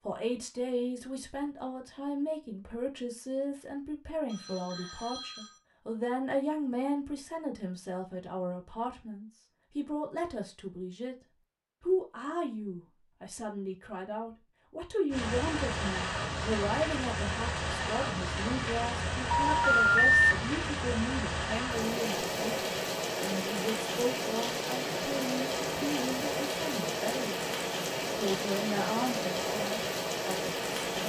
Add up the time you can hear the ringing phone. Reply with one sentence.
The ringing phone can be heard for 2 seconds in total.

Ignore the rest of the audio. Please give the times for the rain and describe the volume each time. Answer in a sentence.
You can hear the rain from 15.1 to 31.0 s, at a steady volume.